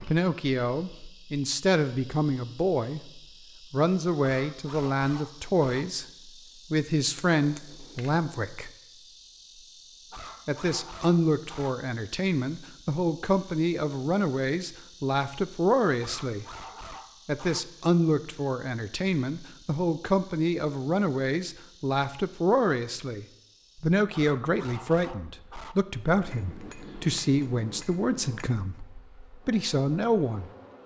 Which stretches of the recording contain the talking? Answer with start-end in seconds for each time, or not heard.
0.1-3.0, 3.7-6.0, 6.7-8.7, 10.4-16.4, 17.2-30.5.